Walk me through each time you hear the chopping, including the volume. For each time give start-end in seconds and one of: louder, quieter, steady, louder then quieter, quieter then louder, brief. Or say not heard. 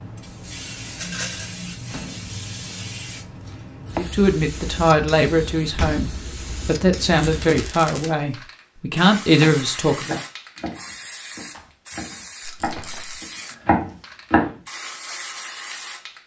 9.4-14.5 quieter then louder.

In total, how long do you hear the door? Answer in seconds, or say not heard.
3 s.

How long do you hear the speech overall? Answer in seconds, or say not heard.
6 s.